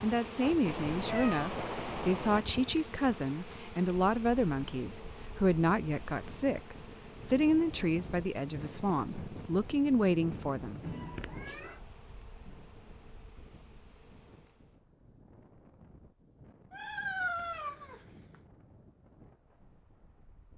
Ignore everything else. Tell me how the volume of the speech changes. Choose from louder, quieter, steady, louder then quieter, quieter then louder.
steady.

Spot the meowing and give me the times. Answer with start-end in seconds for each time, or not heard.
0.7-2.4, 10.8-11.8, 16.7-18.4.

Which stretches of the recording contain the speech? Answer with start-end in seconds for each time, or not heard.
0.0-10.8.